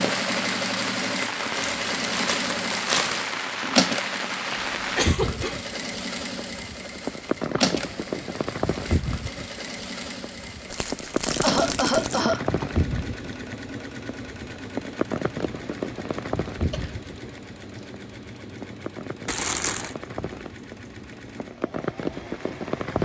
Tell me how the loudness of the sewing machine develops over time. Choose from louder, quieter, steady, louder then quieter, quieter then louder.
quieter.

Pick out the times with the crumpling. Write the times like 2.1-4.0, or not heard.
1.6-3.4, 10.7-12.2, 19.2-19.9.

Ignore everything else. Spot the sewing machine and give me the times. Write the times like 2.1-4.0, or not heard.
0.0-22.9.